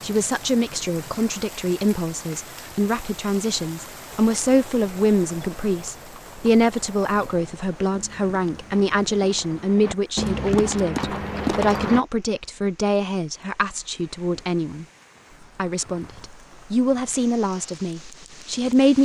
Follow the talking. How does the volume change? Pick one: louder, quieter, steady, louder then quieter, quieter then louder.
steady.